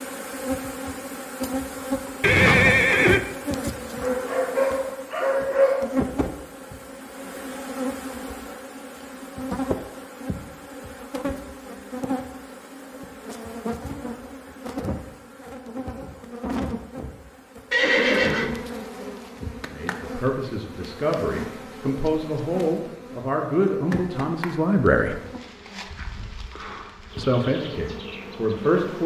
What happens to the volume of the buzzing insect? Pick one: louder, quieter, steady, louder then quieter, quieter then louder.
quieter.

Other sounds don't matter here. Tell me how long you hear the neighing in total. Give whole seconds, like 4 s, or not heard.
2 s.